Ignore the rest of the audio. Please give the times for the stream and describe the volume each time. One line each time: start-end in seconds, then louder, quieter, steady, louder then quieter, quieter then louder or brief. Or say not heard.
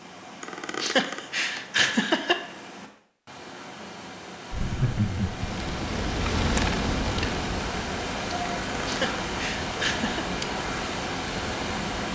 0.0-12.0 louder.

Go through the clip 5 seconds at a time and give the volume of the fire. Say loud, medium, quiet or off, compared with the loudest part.
off, loud, medium.